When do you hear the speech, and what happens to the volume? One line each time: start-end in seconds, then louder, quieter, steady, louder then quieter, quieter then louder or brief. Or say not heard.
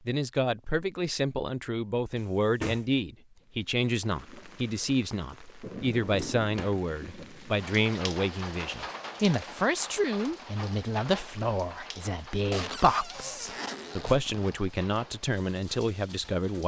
0.1-16.6 steady.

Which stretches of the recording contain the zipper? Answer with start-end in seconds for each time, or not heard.
12.5-14.5.